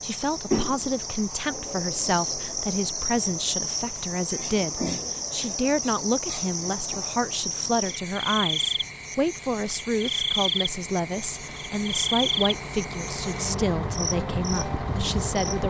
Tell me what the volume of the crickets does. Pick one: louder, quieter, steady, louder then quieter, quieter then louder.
steady.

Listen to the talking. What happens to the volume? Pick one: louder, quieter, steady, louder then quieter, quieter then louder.
steady.